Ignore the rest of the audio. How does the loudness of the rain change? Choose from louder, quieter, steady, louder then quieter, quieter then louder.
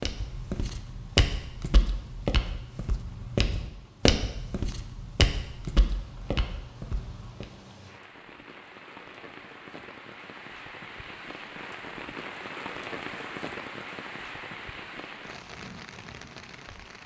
louder.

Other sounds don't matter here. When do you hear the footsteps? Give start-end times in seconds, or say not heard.
0.0-7.5.